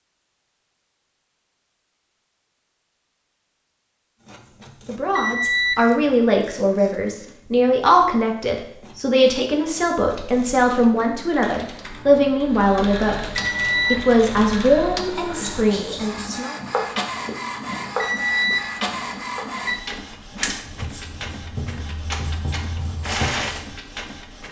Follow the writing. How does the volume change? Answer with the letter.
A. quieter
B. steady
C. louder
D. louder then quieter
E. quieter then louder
E.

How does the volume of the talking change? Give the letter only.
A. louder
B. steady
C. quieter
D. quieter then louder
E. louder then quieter
B.